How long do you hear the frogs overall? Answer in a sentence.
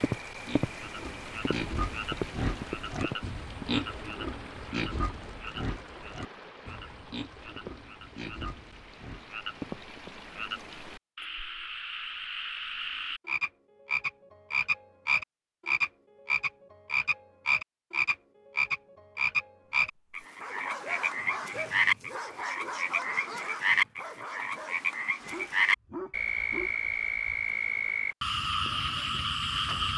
You can hear the frogs for 30 seconds altogether.